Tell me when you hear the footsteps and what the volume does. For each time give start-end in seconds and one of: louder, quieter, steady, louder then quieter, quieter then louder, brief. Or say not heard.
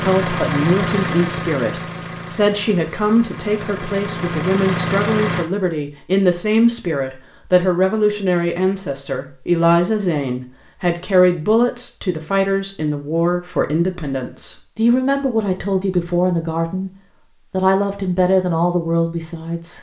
not heard.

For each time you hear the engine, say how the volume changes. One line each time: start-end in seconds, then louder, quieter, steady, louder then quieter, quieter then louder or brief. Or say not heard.
0.0-5.5 quieter then louder.